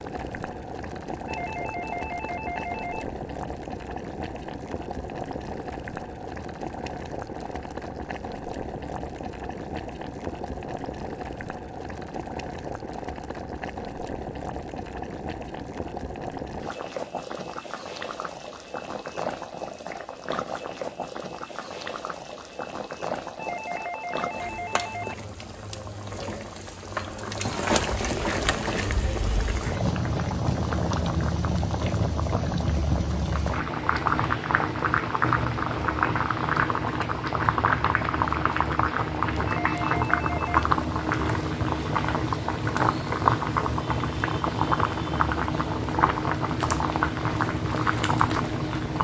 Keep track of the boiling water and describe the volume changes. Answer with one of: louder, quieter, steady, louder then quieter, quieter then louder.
louder.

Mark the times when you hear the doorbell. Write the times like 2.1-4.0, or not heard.
1.2-3.0, 23.4-25.2, 39.5-40.6.